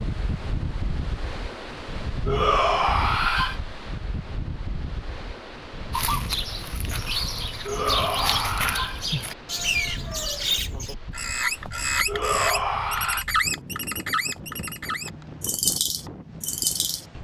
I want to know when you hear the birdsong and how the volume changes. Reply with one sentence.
You can hear the birdsong from 5.9 to 17.1 s, at a steady volume.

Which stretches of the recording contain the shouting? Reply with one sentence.
You can hear the shouting from 2.2 to 3.6 s, from 7.7 to 9.1 s and from 12.1 to 13.2 s.